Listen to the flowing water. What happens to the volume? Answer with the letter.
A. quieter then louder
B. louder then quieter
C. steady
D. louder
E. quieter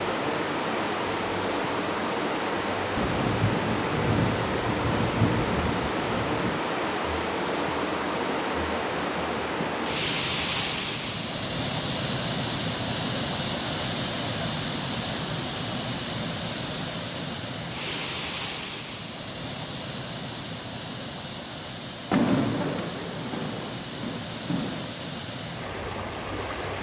E.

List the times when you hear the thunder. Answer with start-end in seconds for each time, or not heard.
3.0-6.6, 22.1-24.9.